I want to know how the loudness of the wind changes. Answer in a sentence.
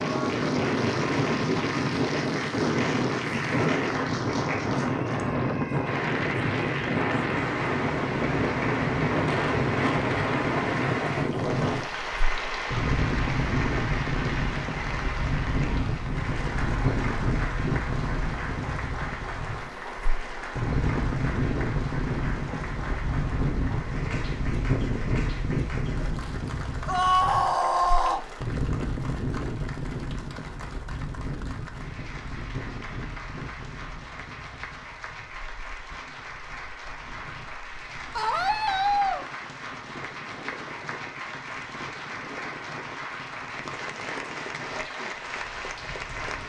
The volume of the wind goes down.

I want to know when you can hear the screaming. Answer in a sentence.
The screaming can be heard from 4.9 to 6.0 s, from 26.9 to 28.2 s and from 38.1 to 39.2 s.